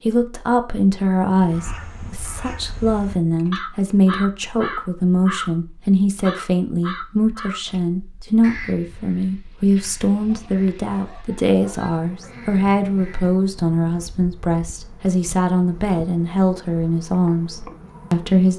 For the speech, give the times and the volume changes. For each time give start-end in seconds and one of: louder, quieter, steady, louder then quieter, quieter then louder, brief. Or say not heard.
0.1-18.5 steady.